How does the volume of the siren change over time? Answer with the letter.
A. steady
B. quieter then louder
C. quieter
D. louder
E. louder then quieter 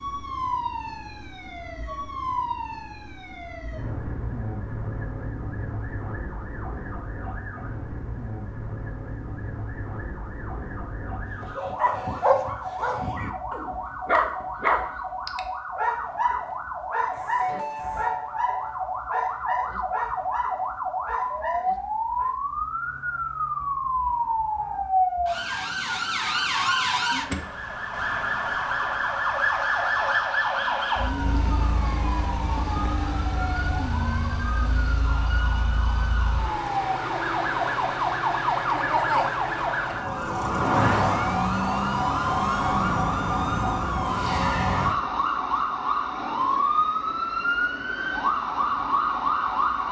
D.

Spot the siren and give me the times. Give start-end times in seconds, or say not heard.
0.0-49.8.